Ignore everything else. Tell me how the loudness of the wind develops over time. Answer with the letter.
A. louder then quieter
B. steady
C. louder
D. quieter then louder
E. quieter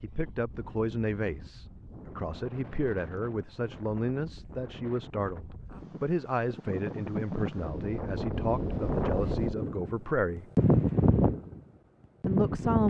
C.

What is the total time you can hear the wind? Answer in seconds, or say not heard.
13 s.